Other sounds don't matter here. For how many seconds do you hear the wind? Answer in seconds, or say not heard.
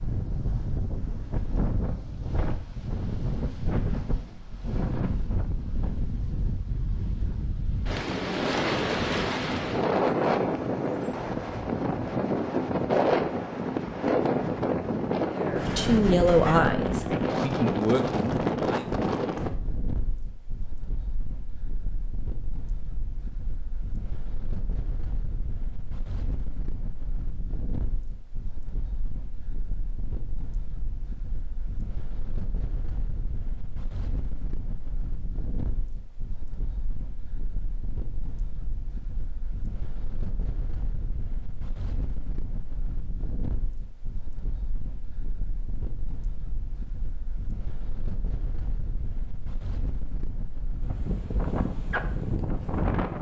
53 s.